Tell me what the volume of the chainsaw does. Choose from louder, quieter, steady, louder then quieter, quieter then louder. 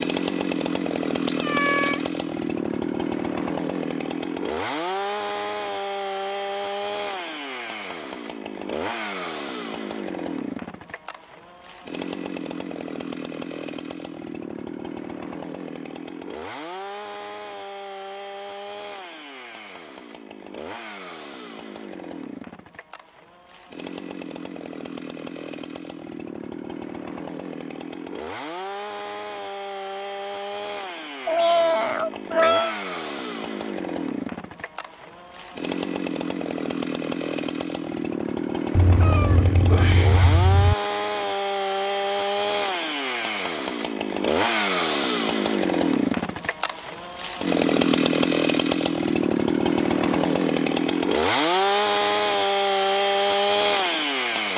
quieter then louder.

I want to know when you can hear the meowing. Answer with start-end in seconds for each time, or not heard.
1.2-2.2, 31.2-32.8, 38.7-40.8.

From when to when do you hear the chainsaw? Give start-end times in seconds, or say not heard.
0.0-54.5.